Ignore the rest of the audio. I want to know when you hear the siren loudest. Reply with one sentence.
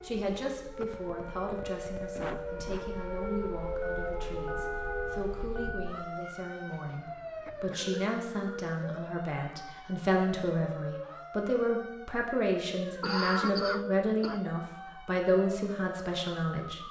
The loudest moment of the siren is at 4 seconds.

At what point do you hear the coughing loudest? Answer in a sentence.
The loudest moment of the coughing is at 13 seconds.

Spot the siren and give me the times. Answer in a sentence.
You can hear the siren from 0.0 to 16.8 s.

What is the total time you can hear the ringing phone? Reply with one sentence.
The ringing phone can be heard for 2 seconds in total.